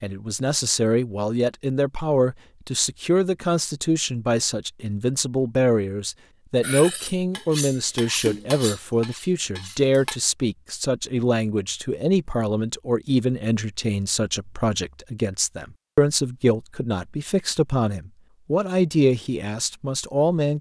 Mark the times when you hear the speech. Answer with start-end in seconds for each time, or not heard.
0.0-20.5.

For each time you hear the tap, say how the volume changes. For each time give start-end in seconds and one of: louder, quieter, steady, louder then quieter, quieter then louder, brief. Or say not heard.
not heard.